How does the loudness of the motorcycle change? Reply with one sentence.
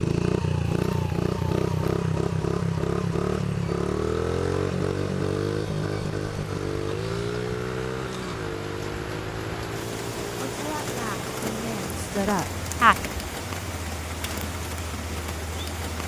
The loudness of the motorcycle goes down.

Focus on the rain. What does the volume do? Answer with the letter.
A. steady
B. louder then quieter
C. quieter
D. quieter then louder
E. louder
E.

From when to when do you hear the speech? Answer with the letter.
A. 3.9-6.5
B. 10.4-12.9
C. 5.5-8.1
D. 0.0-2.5
B.